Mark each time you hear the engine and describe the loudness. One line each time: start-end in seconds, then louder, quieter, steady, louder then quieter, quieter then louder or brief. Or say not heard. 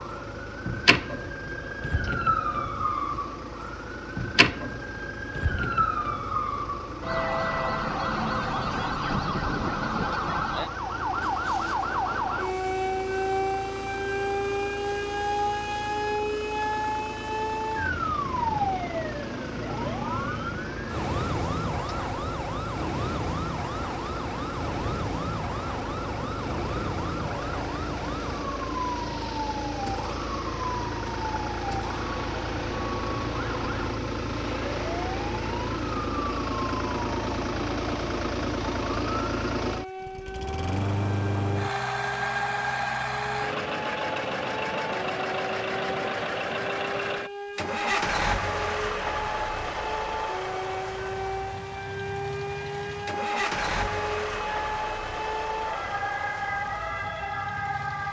0.0-58.0 louder.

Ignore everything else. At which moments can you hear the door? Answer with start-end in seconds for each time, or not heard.
not heard.